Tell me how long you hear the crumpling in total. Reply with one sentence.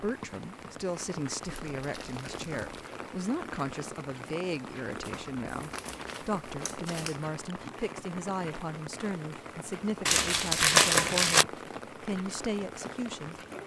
You can hear the crumpling for 5 seconds altogether.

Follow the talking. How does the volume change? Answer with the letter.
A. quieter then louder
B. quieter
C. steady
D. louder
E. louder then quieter
C.